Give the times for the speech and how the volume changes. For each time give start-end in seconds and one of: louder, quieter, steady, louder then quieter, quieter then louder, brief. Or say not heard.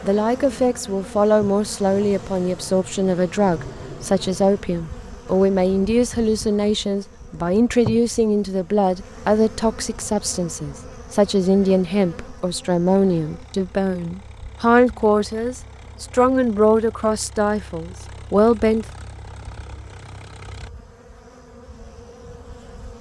0.0-18.9 steady.